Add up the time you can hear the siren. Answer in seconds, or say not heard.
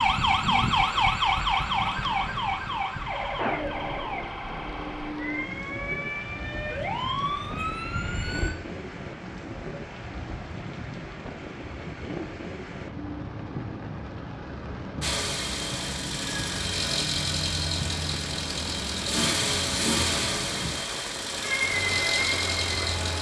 10 s.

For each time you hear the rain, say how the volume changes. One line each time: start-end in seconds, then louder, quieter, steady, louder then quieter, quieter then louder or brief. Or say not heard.
0.0-23.1 steady.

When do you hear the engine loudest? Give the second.
20 s.